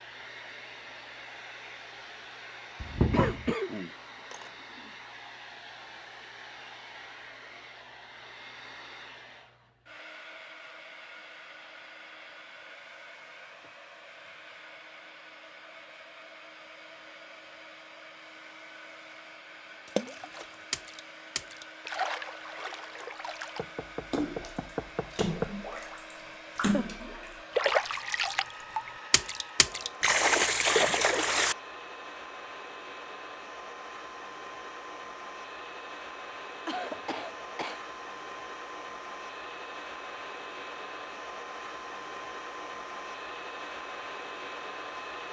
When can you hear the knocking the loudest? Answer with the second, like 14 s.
3 s.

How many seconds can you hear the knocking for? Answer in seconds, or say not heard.
3 s.